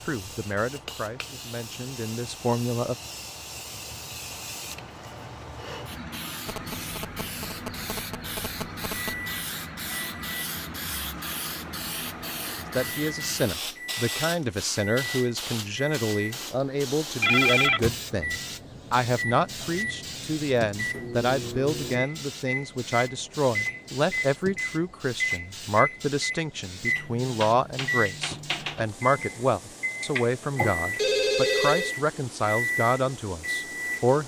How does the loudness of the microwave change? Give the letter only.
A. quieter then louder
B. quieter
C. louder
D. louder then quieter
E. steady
C.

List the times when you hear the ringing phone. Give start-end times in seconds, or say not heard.
6.5-9.2, 17.2-17.8, 30.9-31.9.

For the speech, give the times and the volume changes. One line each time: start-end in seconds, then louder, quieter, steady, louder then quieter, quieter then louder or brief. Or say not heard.
0.1-3.0 brief
12.8-34.2 steady.